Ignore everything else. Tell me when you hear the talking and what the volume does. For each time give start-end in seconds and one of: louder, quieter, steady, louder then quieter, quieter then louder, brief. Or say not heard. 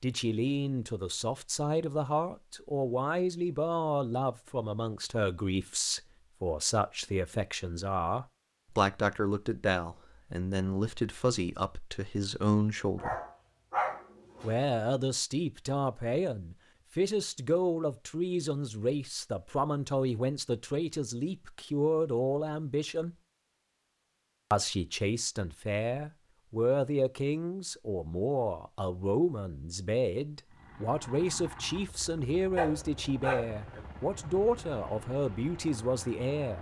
0.0-13.2 steady
14.4-23.1 steady
24.5-36.5 steady.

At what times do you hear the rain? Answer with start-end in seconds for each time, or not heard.
not heard.